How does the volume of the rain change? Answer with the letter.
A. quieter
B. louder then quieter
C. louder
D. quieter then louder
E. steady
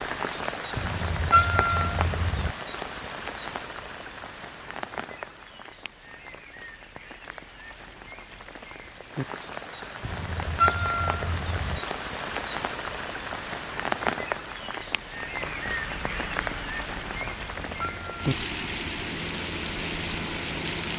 D.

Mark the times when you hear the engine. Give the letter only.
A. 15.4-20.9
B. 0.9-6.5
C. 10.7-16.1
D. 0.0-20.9
A.